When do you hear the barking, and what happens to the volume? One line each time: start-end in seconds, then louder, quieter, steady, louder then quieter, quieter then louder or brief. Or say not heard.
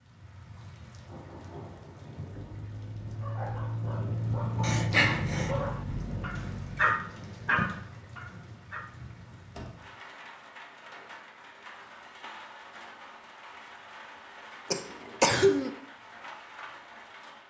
3.2-8.9 louder.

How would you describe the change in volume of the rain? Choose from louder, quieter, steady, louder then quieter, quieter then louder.
louder then quieter.